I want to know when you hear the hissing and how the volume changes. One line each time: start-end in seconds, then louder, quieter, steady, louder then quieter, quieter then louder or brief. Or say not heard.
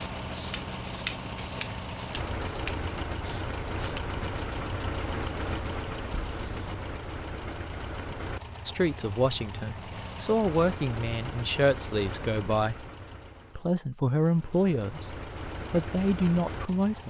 0.0-6.8 quieter.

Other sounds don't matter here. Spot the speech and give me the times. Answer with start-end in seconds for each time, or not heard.
8.7-12.8, 13.6-17.0.